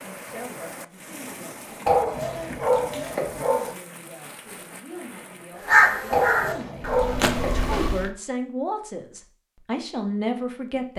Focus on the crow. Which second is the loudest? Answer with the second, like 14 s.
6 s.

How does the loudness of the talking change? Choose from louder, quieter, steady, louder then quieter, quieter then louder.
louder.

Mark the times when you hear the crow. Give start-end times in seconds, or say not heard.
5.6-8.1.